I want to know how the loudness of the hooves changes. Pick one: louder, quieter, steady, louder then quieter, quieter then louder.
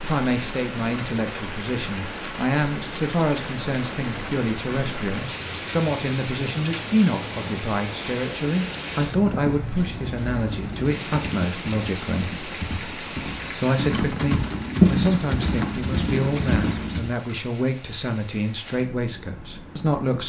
louder then quieter.